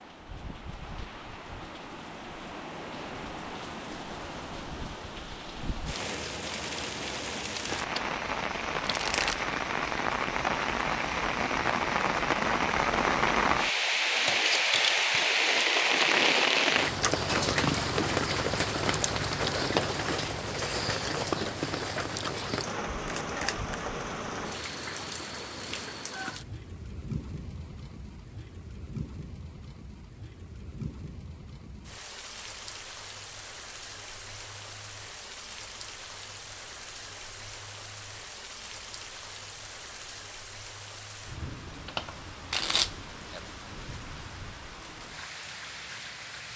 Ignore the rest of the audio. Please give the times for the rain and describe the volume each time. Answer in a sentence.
You can hear the rain from 0.0 to 46.5 s, getting louder then quieter.